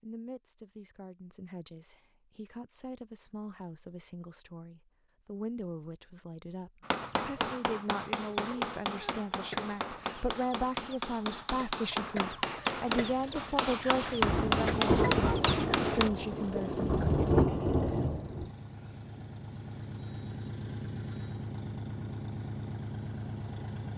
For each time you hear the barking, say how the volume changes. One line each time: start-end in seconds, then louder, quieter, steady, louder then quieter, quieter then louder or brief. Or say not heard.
not heard.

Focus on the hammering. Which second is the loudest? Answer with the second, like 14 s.
14 s.